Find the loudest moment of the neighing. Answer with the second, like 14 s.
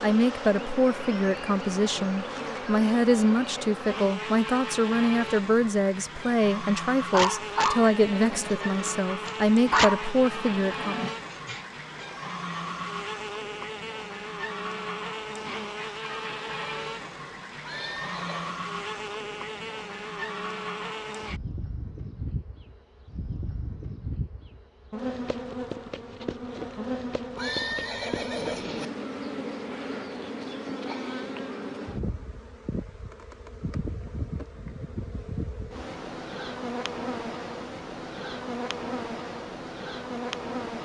28 s.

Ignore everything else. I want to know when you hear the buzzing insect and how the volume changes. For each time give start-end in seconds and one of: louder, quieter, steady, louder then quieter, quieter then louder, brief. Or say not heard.
0.0-40.8 steady.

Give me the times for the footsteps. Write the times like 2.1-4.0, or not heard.
not heard.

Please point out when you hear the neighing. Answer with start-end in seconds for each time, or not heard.
7.5-8.9, 17.6-18.6, 27.4-28.9.